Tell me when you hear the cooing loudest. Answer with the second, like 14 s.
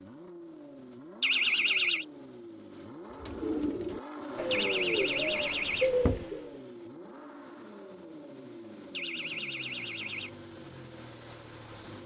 6 s.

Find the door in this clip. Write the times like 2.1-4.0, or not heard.
1.2-2.0, 4.5-6.2, 8.9-10.3.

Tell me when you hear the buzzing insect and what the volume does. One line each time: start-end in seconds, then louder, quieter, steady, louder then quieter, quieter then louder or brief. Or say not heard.
not heard.